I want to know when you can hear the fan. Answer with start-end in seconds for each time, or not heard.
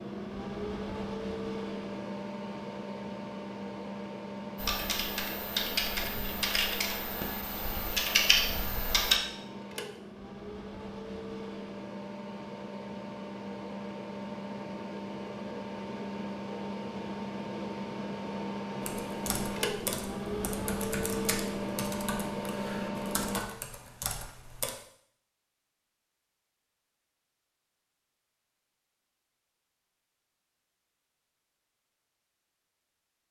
0.0-23.4.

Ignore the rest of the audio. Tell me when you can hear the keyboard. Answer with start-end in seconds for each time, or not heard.
4.5-9.2, 18.8-24.7.